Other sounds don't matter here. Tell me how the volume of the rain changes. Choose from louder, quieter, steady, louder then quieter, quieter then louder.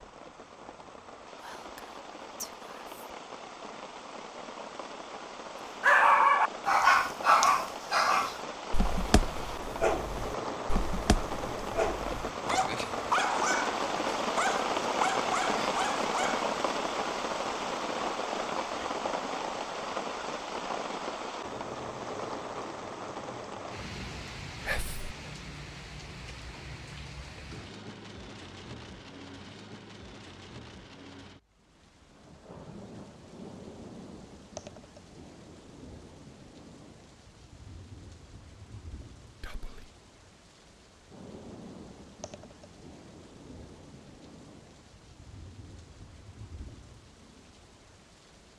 louder then quieter.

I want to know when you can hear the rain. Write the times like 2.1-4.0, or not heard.
0.0-48.5.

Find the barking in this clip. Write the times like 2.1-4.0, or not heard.
5.8-16.4.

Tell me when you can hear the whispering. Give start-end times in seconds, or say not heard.
1.4-3.0, 24.6-25.1, 39.4-39.9.